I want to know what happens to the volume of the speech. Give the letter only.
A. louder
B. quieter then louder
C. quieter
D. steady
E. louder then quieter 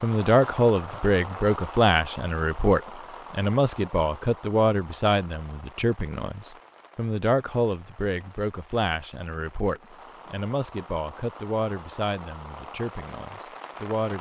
C.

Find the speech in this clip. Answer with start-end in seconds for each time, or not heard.
0.0-14.1.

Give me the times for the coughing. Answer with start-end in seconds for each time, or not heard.
not heard.